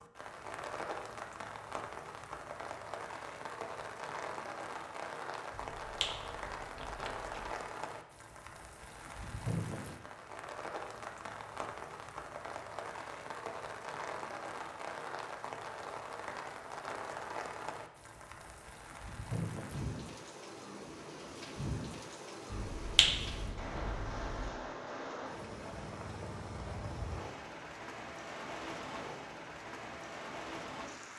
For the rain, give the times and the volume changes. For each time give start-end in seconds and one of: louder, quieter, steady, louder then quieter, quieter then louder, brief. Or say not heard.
0.0-31.1 steady.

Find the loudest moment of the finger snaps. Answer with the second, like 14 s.
23 s.